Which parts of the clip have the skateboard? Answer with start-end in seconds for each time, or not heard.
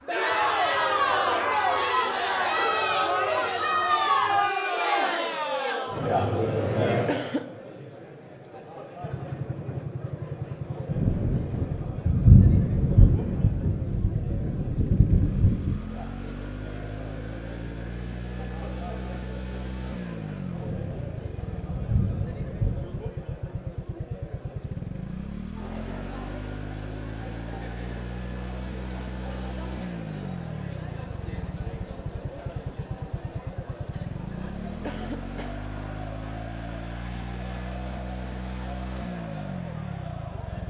not heard.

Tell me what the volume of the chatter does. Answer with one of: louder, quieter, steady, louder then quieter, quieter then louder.
quieter.